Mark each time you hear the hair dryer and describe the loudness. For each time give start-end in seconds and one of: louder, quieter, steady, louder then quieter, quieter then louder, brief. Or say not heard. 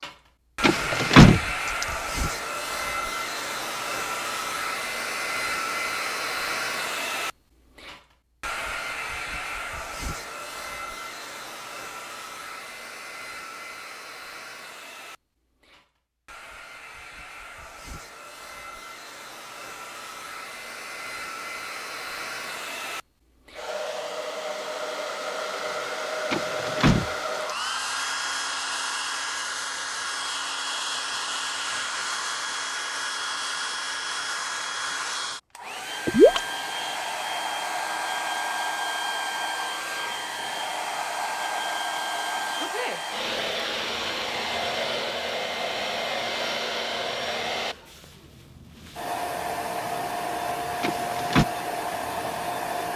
0.0-52.9 quieter then louder.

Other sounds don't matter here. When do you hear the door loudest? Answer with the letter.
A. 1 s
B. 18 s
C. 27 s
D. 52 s
A.